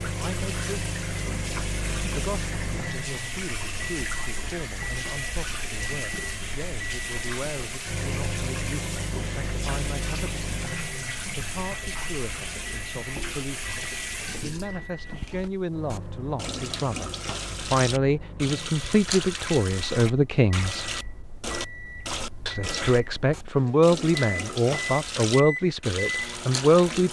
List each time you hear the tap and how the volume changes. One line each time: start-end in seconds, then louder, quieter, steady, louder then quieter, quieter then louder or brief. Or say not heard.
0.0-27.0 steady.